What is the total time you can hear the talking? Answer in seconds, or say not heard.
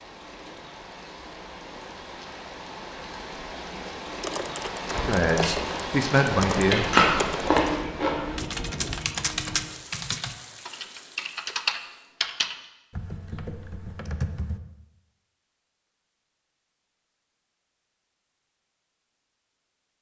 2 s.